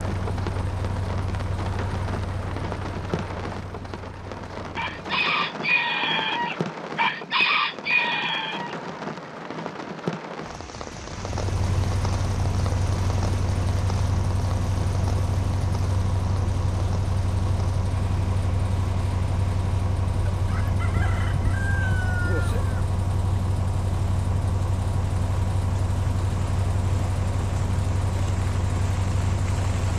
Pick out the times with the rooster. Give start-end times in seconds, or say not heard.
4.8-8.8, 20.4-22.8.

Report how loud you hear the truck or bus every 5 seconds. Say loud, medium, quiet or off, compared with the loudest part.
medium, off, loud, loud, loud, loud.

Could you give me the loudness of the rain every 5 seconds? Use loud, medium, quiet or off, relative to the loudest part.
loud, loud, loud, medium, quiet, medium.